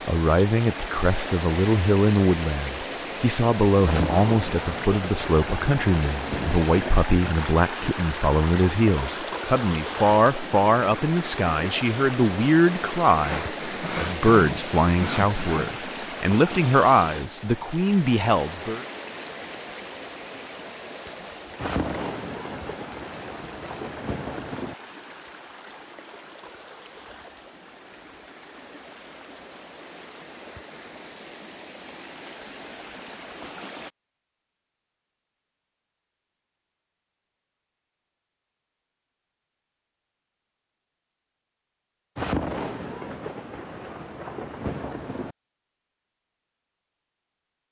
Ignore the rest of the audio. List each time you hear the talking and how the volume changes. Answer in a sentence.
The talking can be heard from 0.1 to 18.9 s, at a steady volume.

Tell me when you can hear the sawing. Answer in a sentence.
The sawing can be heard from 13.2 to 15.8 s.